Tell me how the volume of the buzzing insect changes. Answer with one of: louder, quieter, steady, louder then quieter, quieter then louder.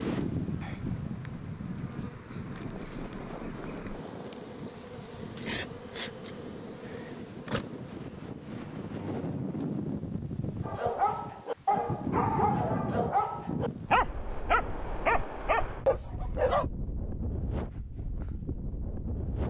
louder then quieter.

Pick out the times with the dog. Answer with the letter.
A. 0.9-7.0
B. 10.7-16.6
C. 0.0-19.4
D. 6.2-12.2
B.